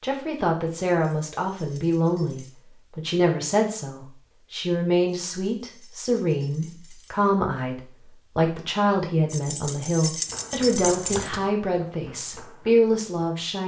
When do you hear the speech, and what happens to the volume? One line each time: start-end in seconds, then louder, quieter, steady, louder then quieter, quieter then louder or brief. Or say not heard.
0.0-13.6 steady.